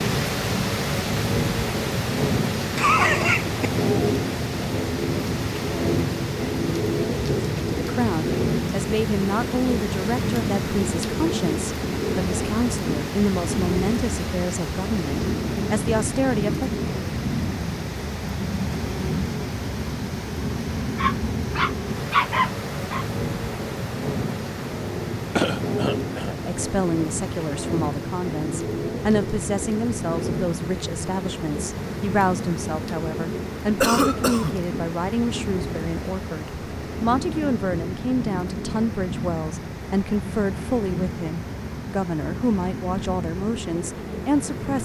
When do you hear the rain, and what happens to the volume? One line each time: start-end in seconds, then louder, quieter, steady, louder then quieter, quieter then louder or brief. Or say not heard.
0.0-44.8 quieter.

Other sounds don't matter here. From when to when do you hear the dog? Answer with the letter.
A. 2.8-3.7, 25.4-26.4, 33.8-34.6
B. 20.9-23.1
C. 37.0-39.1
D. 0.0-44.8
B.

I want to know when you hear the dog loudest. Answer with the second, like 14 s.
22 s.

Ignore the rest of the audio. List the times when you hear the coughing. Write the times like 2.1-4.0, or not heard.
2.8-3.7, 25.4-26.4, 33.8-34.6.